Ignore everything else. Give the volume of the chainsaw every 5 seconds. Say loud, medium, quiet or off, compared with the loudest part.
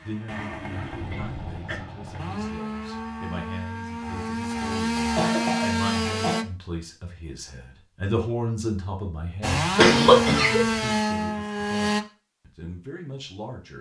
medium, loud, loud.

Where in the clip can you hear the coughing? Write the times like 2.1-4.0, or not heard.
0.8-2.4, 5.0-6.4, 9.8-10.7.